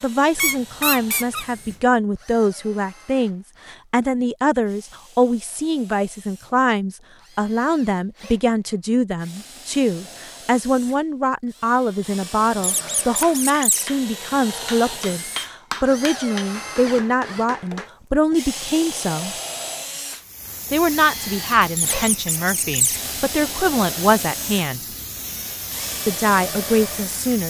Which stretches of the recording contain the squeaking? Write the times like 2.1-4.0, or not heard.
0.3-1.8, 12.6-13.8, 21.8-23.0.